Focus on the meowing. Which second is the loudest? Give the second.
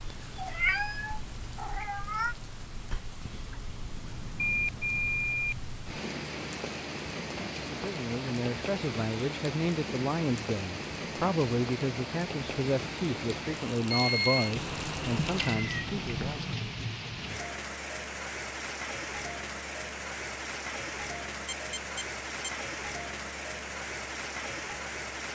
1 s.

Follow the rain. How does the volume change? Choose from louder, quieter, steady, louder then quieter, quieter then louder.
louder.